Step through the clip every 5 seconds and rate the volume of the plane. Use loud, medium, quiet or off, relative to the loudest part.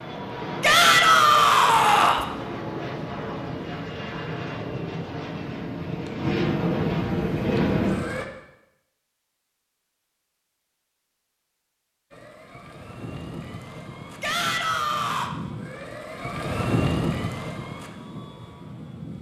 medium, loud, quiet, medium.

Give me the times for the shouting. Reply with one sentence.
You can hear the shouting from 0.6 to 2.2 s and from 14.2 to 15.3 s.